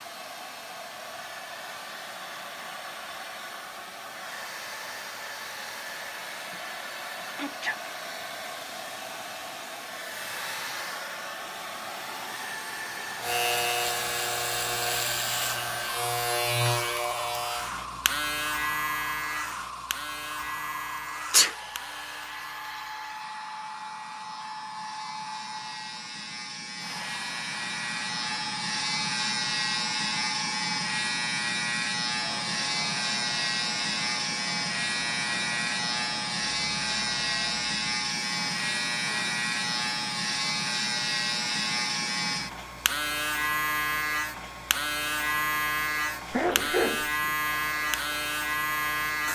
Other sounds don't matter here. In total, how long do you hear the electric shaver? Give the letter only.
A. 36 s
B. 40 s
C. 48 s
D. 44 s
A.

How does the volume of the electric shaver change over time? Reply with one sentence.
The loudness of the electric shaver goes down, then up.